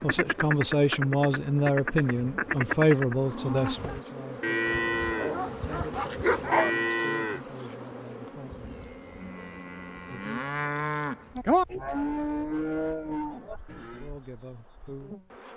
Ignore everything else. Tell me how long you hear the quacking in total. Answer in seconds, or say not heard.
3 s.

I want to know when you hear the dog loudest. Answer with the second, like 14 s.
6 s.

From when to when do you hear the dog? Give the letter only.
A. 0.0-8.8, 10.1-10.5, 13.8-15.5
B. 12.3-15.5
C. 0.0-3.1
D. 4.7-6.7
D.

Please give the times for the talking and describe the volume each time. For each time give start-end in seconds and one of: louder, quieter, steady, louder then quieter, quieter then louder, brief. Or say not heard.
0.0-8.8 quieter
10.1-10.5 brief
13.8-15.5 brief.